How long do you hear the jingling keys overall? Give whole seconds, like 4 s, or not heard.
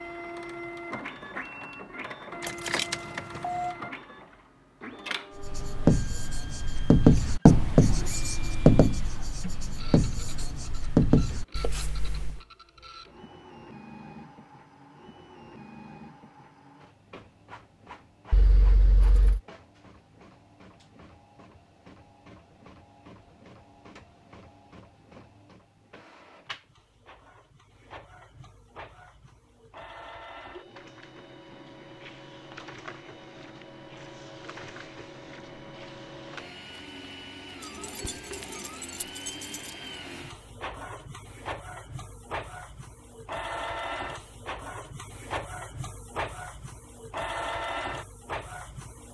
4 s.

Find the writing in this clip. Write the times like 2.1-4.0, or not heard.
5.3-12.4.